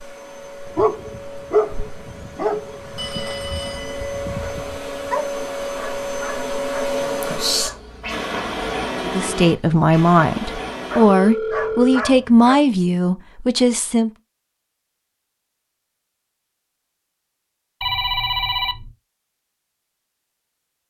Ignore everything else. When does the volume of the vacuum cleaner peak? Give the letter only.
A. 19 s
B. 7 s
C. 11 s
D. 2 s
B.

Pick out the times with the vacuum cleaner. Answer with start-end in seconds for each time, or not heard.
0.0-11.4.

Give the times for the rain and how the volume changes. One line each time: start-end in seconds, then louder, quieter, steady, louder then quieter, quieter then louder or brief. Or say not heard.
not heard.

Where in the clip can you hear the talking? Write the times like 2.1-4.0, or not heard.
9.0-14.1.